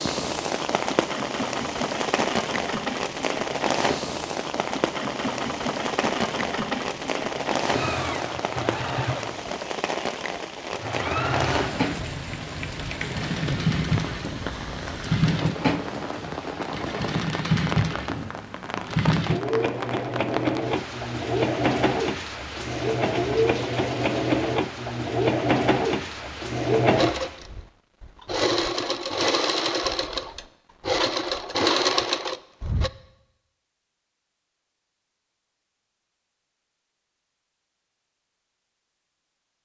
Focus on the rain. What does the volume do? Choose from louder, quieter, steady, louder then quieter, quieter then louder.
quieter.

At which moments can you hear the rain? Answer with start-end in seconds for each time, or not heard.
0.0-27.4.